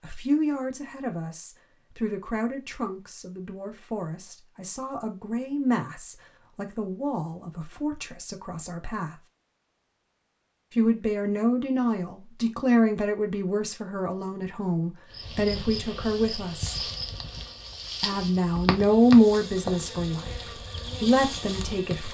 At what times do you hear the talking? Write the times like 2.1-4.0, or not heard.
0.0-9.2, 10.8-16.8, 18.0-22.0.